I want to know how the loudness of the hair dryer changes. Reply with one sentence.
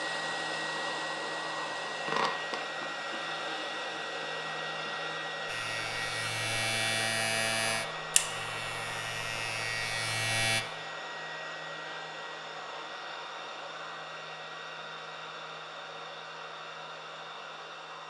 The loudness of the hair dryer goes down.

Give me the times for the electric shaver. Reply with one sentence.
The electric shaver can be heard from 5.5 to 10.7 s.